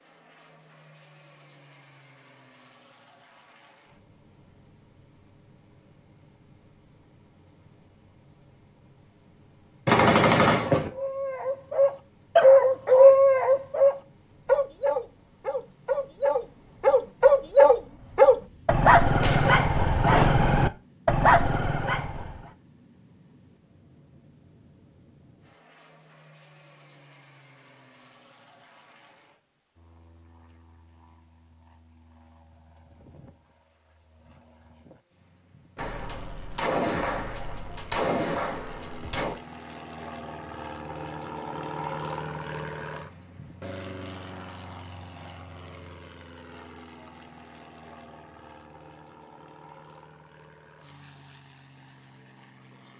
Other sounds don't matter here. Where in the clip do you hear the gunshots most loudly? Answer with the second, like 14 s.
10 s.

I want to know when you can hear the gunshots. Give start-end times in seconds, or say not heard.
9.8-10.9, 18.3-19.7, 35.8-39.4.